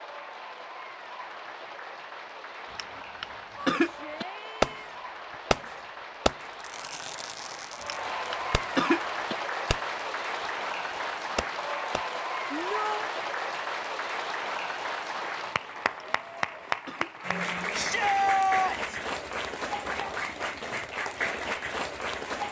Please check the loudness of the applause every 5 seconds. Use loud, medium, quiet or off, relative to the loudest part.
medium, loud, loud, loud, loud.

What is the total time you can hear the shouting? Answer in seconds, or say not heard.
3 s.